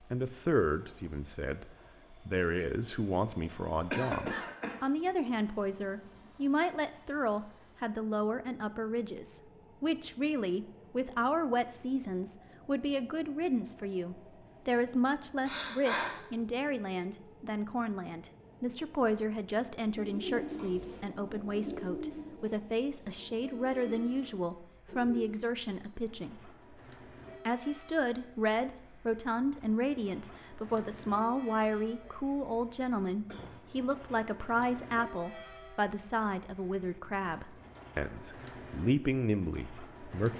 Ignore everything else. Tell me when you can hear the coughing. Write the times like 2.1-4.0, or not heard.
3.9-4.8, 15.4-16.1, 31.6-33.5.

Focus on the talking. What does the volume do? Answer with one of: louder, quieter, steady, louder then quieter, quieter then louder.
steady.